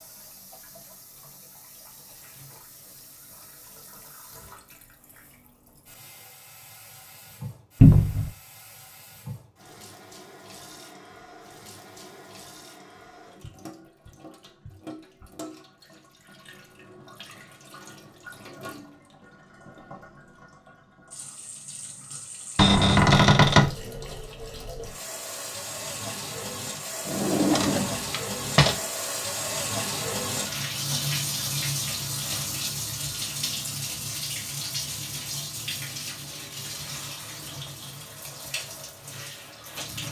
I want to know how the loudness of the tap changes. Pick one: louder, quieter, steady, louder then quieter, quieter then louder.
louder.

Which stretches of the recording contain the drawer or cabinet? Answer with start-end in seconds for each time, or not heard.
7.8-8.3, 22.6-23.8, 27.1-28.8.